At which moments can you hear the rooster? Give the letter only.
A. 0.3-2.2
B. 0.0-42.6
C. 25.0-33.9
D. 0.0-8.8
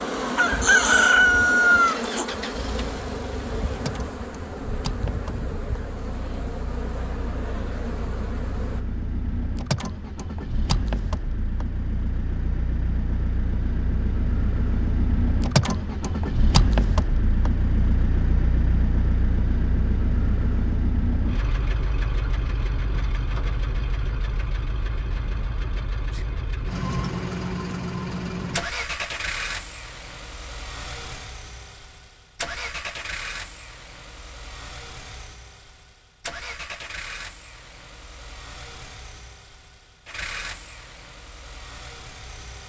A.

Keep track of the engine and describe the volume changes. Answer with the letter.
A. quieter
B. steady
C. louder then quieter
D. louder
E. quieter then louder
C.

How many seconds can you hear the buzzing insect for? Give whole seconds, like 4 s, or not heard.
9 s.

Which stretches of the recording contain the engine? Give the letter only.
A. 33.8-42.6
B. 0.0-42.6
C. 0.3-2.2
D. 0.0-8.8
B.